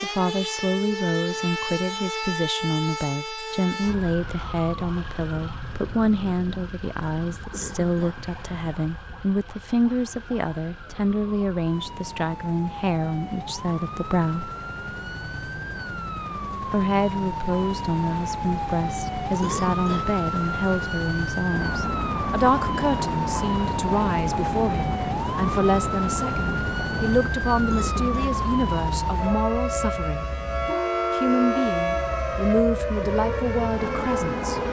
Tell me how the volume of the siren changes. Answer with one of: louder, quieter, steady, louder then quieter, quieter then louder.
quieter then louder.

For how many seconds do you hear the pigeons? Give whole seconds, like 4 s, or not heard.
not heard.